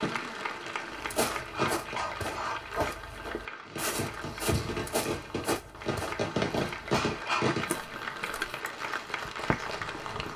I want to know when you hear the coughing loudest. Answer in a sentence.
The volume of the coughing peaks at 7 seconds.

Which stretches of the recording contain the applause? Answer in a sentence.
The applause can be heard from 0.0 to 10.3 s.